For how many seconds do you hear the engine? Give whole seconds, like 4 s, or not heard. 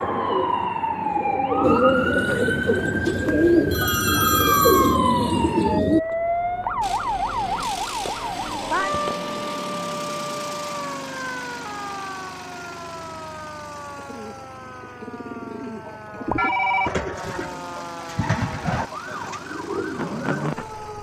14 s.